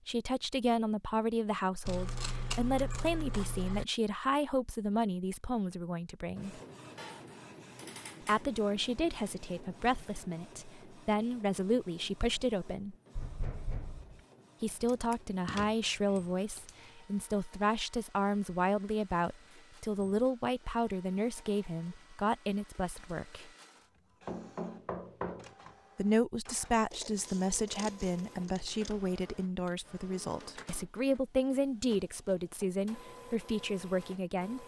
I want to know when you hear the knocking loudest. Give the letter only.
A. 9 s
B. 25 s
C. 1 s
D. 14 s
B.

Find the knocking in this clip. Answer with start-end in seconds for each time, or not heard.
13.2-14.2, 24.2-25.5.